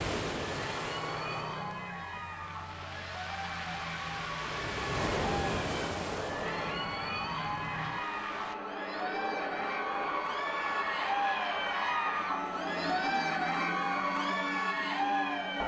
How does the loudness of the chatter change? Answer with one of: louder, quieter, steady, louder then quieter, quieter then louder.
louder.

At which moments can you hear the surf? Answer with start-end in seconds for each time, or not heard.
0.0-8.6.